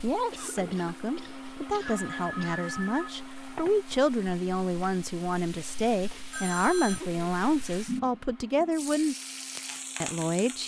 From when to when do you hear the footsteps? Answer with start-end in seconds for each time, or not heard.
not heard.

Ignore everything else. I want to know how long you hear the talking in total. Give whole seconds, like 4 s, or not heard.
10 s.